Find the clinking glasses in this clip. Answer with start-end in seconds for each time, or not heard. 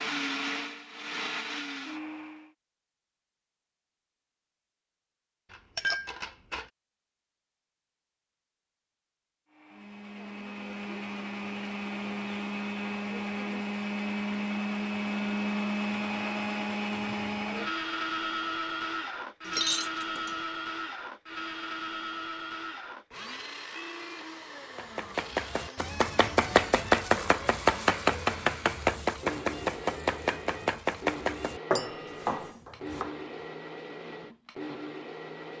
5.5-6.7, 19.4-20.4, 31.8-32.2.